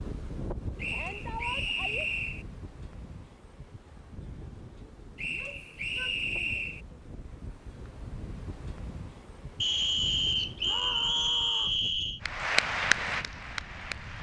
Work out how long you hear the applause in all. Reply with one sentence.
The applause can be heard for 2 seconds in total.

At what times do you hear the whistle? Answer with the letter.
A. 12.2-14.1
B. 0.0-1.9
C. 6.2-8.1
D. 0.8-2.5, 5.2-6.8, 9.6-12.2
D.